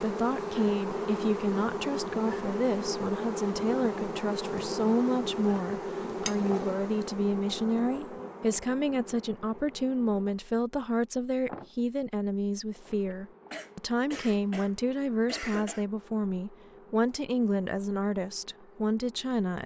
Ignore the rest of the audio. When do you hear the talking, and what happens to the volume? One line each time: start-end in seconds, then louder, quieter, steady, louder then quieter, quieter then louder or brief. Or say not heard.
0.0-19.6 steady.